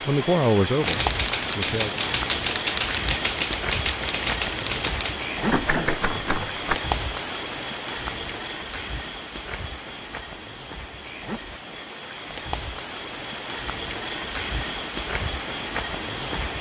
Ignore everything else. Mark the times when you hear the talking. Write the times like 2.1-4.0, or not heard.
0.1-2.0.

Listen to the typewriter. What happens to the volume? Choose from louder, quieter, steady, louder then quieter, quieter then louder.
steady.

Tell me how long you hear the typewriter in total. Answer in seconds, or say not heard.
6 s.